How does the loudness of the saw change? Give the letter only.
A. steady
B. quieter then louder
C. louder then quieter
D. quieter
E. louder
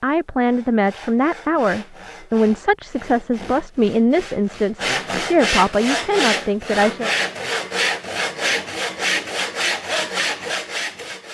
E.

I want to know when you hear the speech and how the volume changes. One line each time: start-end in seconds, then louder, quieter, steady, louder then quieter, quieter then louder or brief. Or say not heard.
0.0-7.1 steady.